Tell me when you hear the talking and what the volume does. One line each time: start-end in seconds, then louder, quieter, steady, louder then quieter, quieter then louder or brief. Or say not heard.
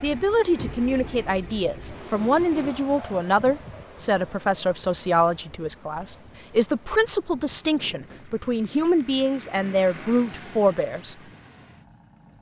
0.0-11.2 steady.